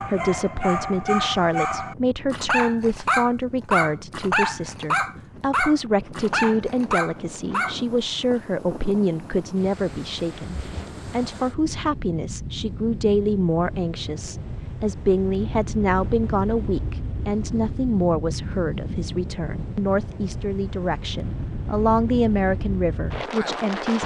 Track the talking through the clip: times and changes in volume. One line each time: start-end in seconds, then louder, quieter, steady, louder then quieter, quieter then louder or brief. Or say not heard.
0.0-24.0 steady.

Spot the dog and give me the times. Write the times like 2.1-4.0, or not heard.
0.0-8.4.